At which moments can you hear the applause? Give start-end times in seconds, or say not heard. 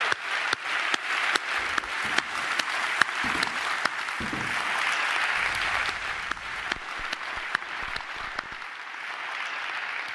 0.0-10.1.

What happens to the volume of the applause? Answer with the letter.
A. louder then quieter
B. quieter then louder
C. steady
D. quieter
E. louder
D.